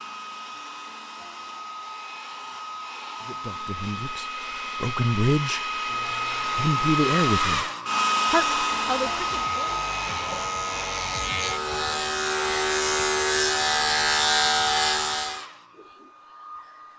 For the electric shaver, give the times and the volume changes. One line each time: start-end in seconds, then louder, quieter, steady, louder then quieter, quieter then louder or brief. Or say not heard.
8.3-15.4 louder.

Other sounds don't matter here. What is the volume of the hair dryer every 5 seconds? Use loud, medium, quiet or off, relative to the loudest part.
medium, loud, medium, quiet.